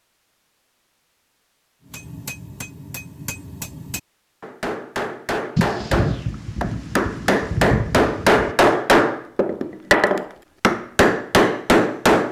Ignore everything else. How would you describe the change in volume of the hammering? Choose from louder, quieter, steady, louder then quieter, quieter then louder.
louder.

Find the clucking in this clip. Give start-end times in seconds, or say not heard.
not heard.